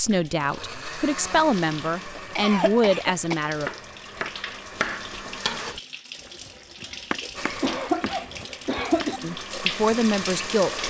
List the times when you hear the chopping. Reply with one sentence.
You can hear the chopping from 3.5 to 5.8 s and from 6.5 to 9.2 s.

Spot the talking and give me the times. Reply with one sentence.
The talking can be heard from 0.0 to 3.7 s and from 9.2 to 10.8 s.